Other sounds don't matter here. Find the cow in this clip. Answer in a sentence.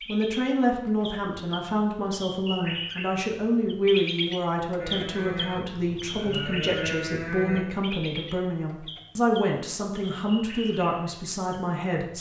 You can hear the cow from 4.8 to 7.7 s.